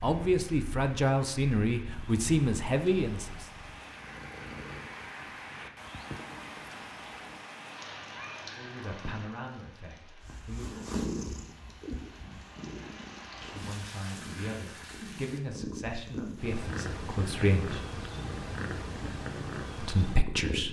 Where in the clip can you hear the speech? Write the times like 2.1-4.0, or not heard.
0.0-3.5, 8.4-10.7, 13.5-17.8, 19.8-20.6.